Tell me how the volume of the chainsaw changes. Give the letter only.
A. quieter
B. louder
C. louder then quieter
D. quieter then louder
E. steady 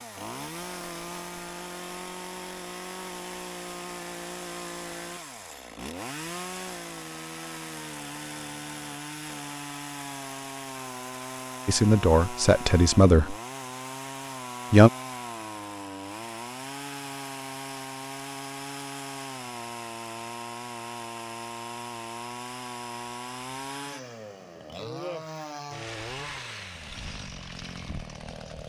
E.